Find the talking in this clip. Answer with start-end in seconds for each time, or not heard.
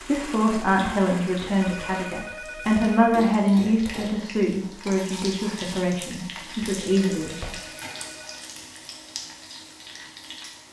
0.0-7.5.